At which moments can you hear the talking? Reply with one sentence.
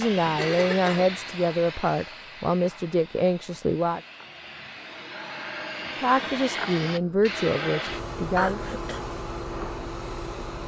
The talking can be heard from 0.0 to 4.0 s and from 6.0 to 8.6 s.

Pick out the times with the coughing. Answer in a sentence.
You can hear the coughing from 0.3 to 1.1 s and from 8.3 to 9.0 s.